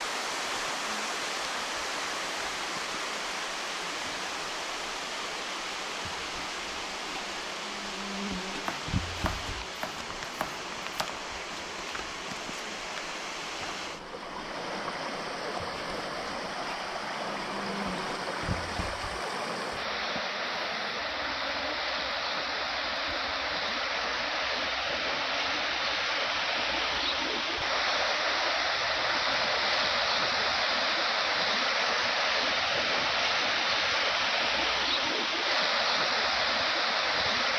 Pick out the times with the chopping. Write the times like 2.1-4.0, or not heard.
8.7-11.1.